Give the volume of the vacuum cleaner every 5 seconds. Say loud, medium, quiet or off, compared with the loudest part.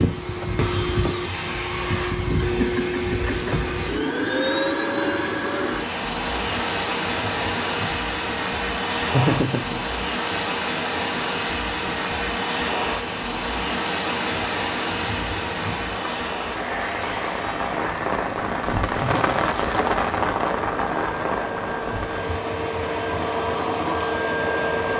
loud, loud, loud, medium, loud.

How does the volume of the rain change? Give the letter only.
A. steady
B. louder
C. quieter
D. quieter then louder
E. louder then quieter
B.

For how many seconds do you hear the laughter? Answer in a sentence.
The laughter can be heard for 2 seconds in total.